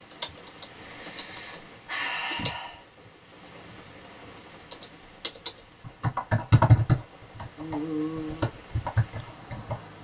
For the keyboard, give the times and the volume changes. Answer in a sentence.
The keyboard can be heard briefly from 0.0 to 2.5 s; and from 4.7 to 9.8 s, getting louder then quieter.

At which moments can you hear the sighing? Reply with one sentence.
You can hear the sighing from 0.2 to 2.8 s and from 7.5 to 8.5 s.